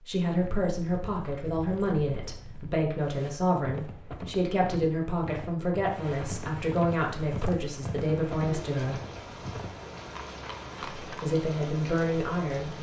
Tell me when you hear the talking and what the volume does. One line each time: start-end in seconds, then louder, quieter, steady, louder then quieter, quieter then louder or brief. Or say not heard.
0.1-9.0 steady
11.1-12.7 brief.